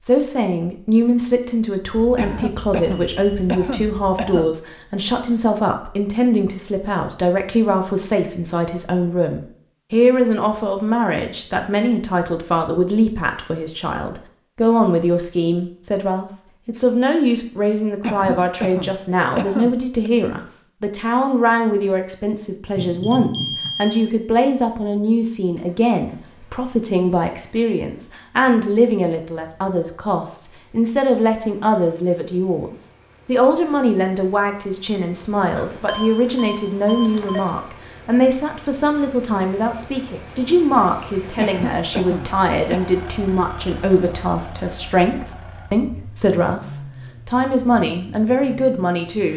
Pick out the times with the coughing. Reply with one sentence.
You can hear the coughing from 2.1 to 4.5 s, from 18.0 to 20.1 s and from 41.4 to 43.0 s.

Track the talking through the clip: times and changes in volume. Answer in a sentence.
The talking can be heard from 0.0 to 46.6 s, at a steady volume; and briefly from 47.2 to 49.3 s.